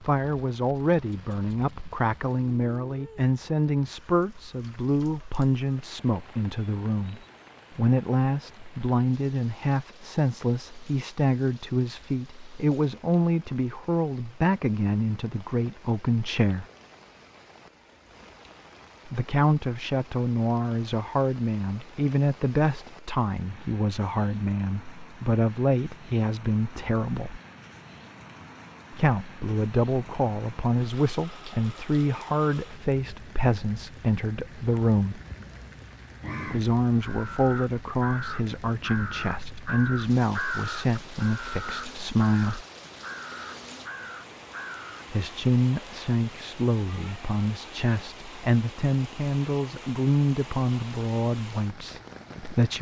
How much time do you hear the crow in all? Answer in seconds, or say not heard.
9 s.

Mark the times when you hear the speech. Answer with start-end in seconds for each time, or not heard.
0.0-16.6, 19.1-27.4, 28.9-35.2, 36.5-42.6, 45.1-52.7.